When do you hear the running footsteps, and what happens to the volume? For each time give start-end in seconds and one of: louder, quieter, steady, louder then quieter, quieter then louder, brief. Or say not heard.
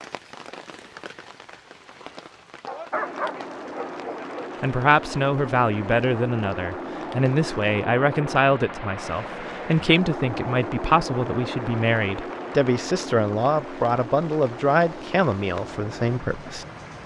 not heard.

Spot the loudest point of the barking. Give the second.
3 s.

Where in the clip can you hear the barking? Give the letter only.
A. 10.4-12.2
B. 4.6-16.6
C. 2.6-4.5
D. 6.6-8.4
C.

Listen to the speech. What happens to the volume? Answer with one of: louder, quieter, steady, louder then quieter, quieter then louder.
steady.